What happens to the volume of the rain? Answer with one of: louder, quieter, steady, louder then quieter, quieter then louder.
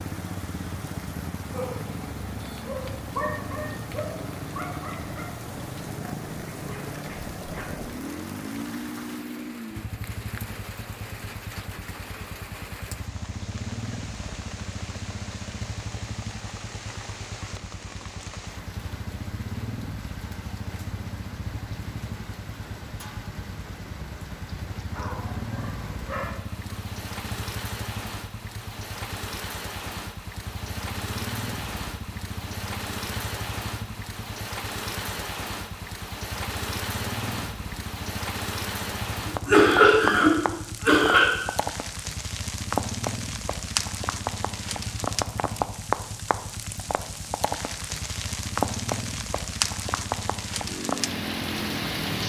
louder.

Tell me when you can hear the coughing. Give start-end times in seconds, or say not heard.
39.2-41.2.